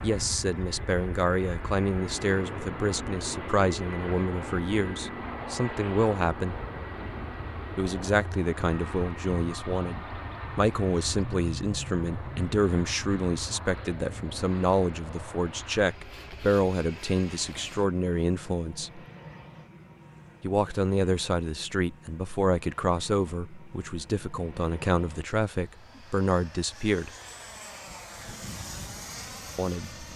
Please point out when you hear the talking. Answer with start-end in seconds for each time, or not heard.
0.0-6.5, 7.8-19.0, 20.4-27.1, 29.6-30.1.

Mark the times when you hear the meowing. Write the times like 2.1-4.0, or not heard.
not heard.